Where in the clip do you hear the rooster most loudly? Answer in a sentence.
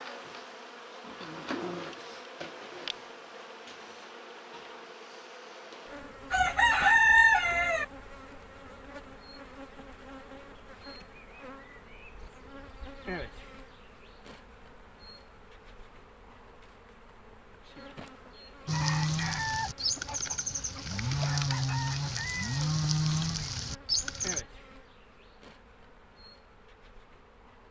The volume of the rooster peaks at 7 seconds.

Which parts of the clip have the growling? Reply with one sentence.
The growling can be heard from 1.0 to 1.9 s.